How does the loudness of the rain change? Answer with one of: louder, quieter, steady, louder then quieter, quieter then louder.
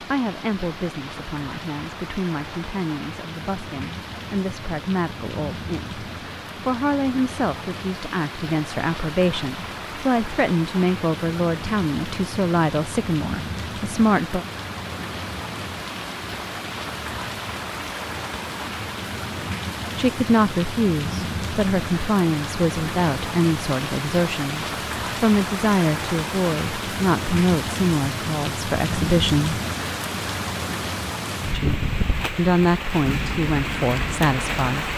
louder.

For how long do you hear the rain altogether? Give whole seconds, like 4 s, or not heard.
35 s.